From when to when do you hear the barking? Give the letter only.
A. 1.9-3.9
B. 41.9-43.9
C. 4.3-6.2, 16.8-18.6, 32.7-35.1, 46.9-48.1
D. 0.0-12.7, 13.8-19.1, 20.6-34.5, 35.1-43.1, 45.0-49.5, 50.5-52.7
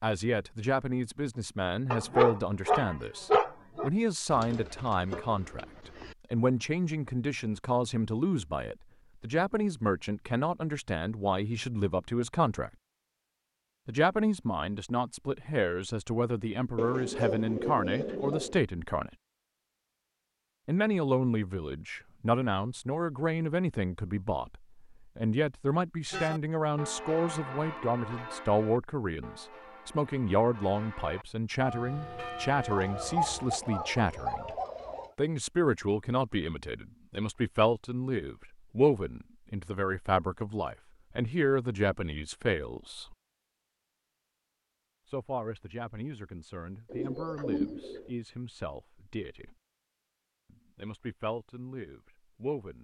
A.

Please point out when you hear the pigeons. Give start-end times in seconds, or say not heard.
4.3-6.2, 16.8-18.6, 32.7-35.1, 46.9-48.1.